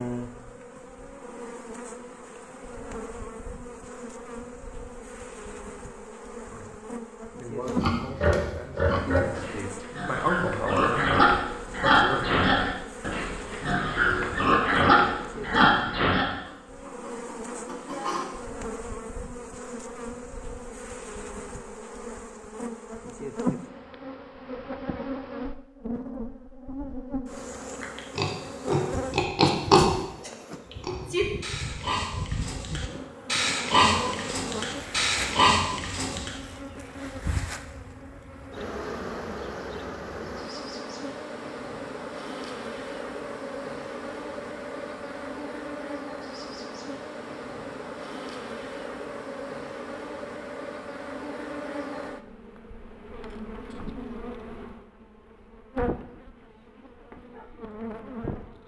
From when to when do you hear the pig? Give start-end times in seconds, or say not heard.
7.7-16.3, 27.8-36.3.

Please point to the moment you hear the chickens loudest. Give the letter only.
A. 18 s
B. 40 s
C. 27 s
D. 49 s
A.